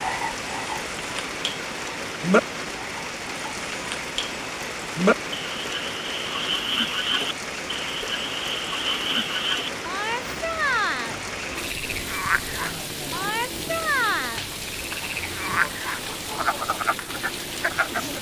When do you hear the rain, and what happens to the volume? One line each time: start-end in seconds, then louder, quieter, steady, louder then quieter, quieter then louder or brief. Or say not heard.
0.0-18.1 steady.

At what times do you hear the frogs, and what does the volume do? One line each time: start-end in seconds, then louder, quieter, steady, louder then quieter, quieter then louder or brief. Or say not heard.
0.0-18.1 steady.